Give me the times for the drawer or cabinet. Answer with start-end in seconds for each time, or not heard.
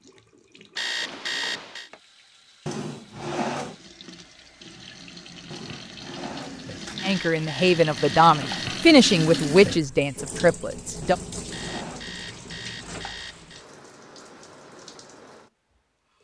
2.6-3.8, 5.5-7.2, 11.0-12.2.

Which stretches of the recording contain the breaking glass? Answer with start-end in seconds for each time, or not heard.
not heard.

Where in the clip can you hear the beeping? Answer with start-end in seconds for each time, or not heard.
0.8-1.9, 7.0-8.7, 11.5-13.7.